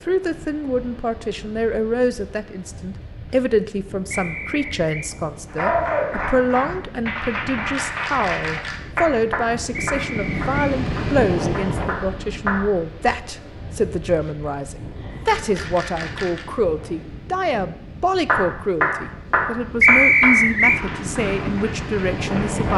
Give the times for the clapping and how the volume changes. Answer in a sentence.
You can hear the clapping from 5.5 to 12.7 s, getting quieter; and from 18.2 to 22.7 s, getting quieter.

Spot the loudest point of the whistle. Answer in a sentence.
The volume of the whistle peaks at 20 seconds.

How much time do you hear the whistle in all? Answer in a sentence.
The whistle can be heard for 3 seconds in total.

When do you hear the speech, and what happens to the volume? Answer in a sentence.
The speech can be heard from 0.1 to 22.7 s, at a steady volume.